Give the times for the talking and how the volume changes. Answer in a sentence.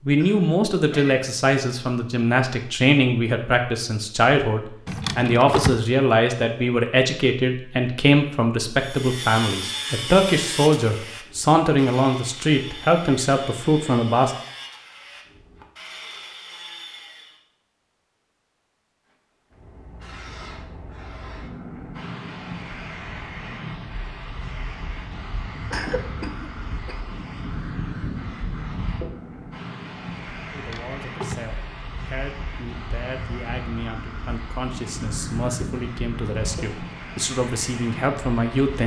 The talking can be heard from 0.1 to 14.3 s, at a steady volume; and from 30.5 to 38.8 s, getting louder.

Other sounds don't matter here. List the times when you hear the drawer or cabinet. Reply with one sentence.
The drawer or cabinet can be heard from 4.8 to 5.8 s and from 30.5 to 31.4 s.